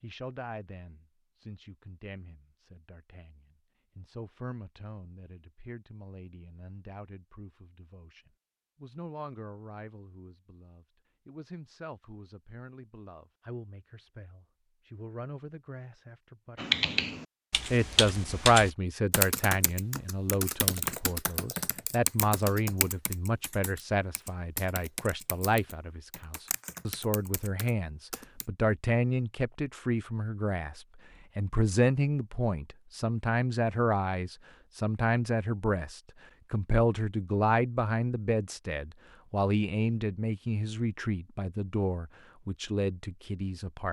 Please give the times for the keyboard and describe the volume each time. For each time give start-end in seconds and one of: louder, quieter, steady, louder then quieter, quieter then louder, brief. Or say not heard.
16.6-28.4 quieter.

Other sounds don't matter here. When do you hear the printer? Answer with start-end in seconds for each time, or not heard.
not heard.